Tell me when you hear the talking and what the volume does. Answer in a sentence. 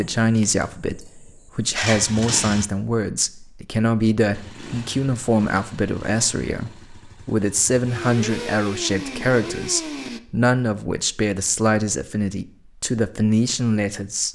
You can hear the talking from 0.0 to 14.3 s, at a steady volume.